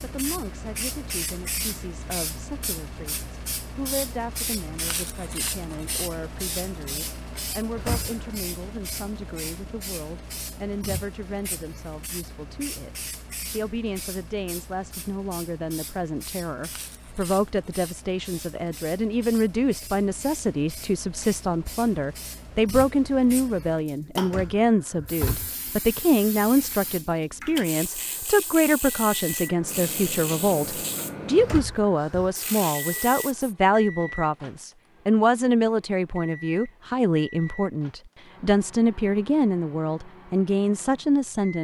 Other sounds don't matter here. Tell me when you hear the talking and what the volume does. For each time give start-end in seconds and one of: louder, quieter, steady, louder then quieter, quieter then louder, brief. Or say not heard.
0.0-41.5 louder.